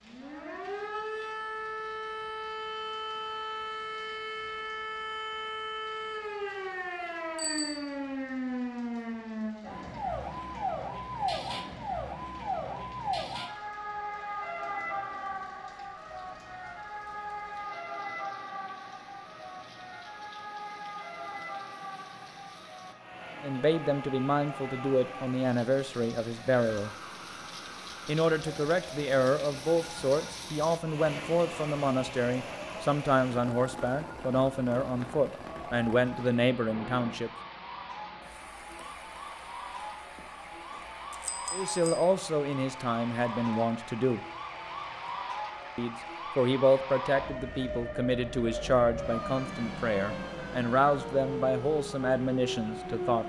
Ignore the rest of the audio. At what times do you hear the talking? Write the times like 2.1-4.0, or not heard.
23.4-26.9, 28.1-37.3, 41.5-44.2, 45.8-53.2.